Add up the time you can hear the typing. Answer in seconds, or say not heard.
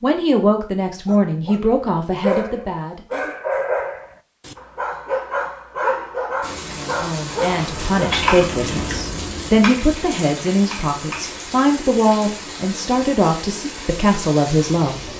5 s.